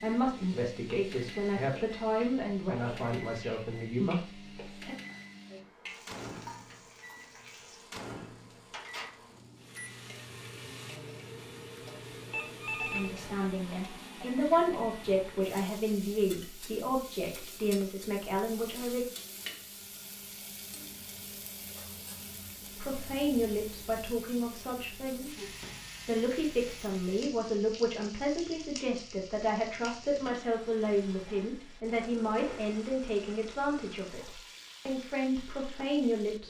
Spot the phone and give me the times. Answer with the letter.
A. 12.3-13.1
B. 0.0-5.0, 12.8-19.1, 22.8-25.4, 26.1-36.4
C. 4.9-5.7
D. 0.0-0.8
A.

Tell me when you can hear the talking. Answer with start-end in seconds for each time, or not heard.
0.0-5.0, 12.8-19.1, 22.8-25.4, 26.1-36.4.